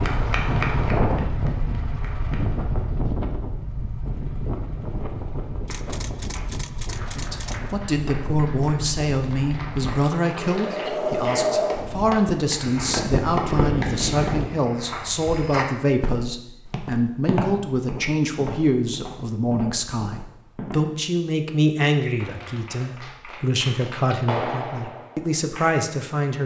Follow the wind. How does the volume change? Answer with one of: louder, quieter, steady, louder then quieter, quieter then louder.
quieter then louder.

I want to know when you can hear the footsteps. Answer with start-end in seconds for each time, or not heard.
12.5-20.8.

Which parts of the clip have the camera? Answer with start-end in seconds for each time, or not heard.
5.7-7.8.